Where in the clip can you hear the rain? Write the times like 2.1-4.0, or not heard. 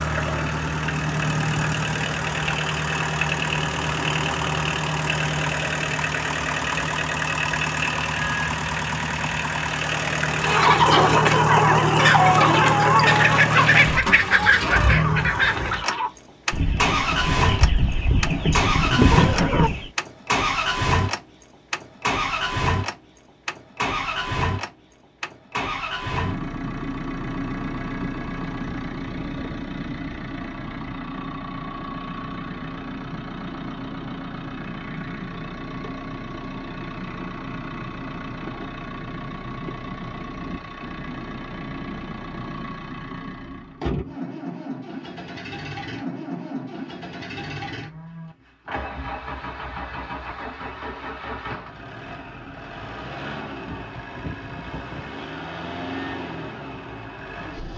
not heard.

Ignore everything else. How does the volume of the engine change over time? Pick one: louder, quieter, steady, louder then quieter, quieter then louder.
quieter.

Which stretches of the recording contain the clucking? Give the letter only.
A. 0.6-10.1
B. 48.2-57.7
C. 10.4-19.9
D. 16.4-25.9
C.